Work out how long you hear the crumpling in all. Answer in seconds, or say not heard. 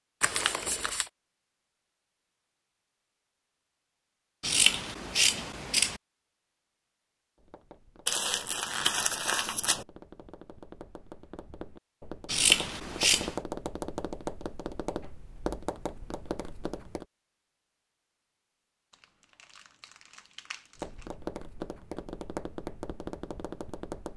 5 s.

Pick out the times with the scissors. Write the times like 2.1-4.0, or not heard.
4.4-6.0, 12.2-13.3.